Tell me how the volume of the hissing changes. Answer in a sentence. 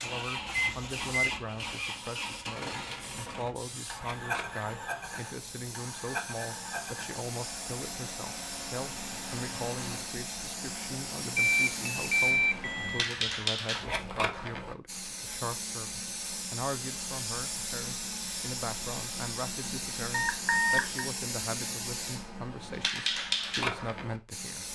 The volume of the hissing goes up.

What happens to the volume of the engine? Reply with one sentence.
The loudness of the engine goes down.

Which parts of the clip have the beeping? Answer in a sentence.
You can hear the beeping from 0.5 to 1.4 s, from 11.3 to 13.1 s and from 20.1 to 21.1 s.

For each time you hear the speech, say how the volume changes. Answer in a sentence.
The speech can be heard from 0.0 to 24.6 s, at a steady volume.